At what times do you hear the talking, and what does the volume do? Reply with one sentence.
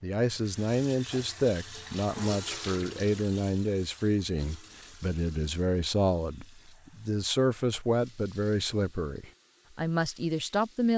The talking can be heard from 0.0 to 10.9 s, at a steady volume.